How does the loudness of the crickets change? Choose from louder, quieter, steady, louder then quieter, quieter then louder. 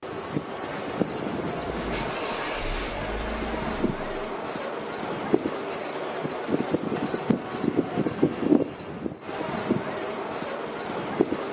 steady.